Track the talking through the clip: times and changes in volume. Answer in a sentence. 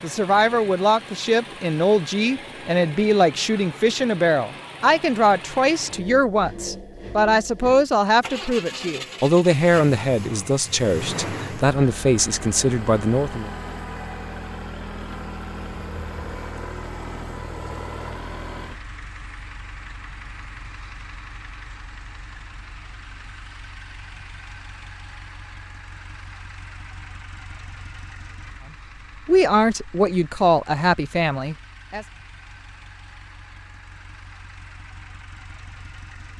You can hear the talking from 0.0 to 13.5 s, at a steady volume; and briefly from 29.2 to 32.0 s.